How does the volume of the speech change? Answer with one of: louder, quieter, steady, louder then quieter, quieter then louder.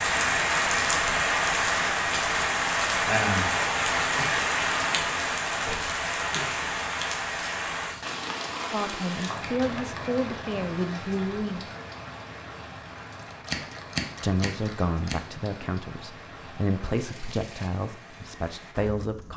steady.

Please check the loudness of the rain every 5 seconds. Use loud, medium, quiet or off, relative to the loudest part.
loud, medium, quiet, quiet.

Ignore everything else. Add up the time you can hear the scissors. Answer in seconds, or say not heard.
3 s.